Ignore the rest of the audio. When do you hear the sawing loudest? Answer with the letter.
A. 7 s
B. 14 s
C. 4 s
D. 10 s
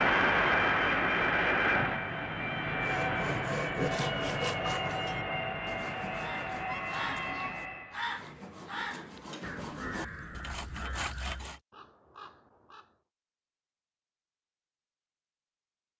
C.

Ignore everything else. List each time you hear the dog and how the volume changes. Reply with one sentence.
The dog can't be heard in this clip.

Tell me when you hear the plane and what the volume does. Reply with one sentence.
You can hear the plane from 0.0 to 8.1 s, getting quieter.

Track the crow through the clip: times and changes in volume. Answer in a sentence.
You can hear the crow from 6.2 to 12.9 s, getting quieter.